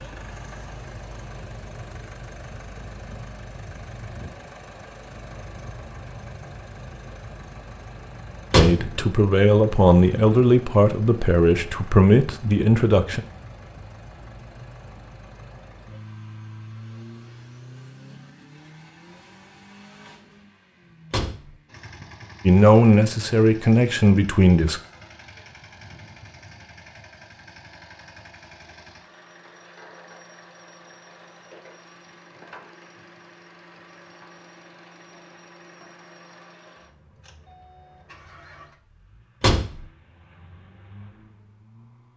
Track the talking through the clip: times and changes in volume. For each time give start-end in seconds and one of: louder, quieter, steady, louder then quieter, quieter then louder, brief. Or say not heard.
8.6-13.2 steady
22.4-24.8 brief.